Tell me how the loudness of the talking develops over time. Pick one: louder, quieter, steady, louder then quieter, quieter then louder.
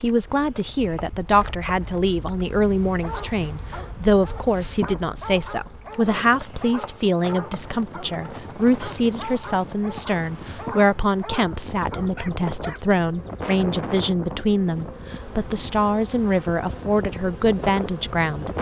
steady.